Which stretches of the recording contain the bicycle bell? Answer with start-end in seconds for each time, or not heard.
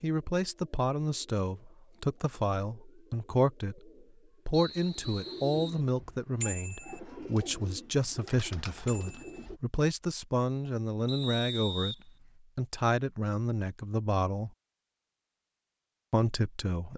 6.4-7.0, 8.8-9.4.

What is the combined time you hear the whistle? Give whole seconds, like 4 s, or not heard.
2 s.